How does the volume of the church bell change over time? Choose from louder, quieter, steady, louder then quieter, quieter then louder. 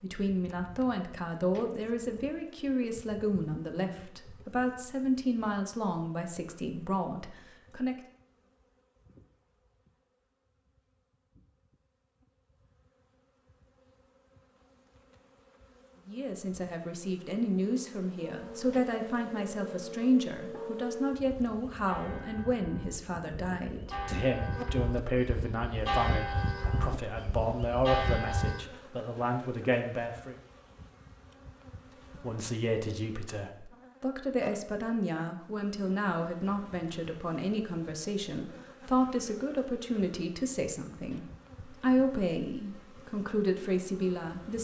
louder.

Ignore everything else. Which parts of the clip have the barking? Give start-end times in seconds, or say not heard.
not heard.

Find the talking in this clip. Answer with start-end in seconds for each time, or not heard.
0.0-8.0, 16.1-30.4, 32.2-44.6.